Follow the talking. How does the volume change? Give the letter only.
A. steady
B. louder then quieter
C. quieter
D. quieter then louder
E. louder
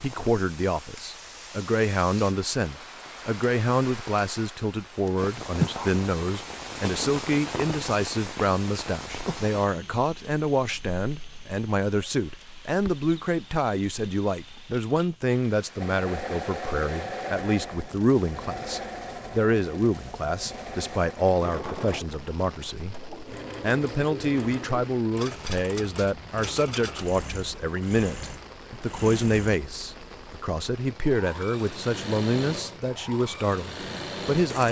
A.